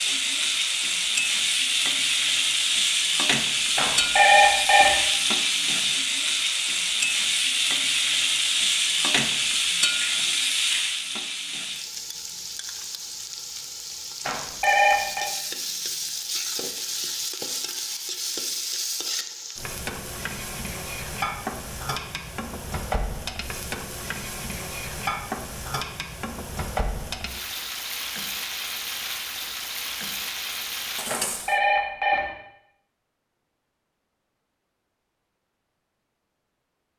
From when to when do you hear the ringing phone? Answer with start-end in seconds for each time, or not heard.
3.8-5.0, 14.2-15.3, 31.1-32.2.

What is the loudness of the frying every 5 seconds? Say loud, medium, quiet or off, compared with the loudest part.
loud, loud, medium, medium, medium, medium, medium, off.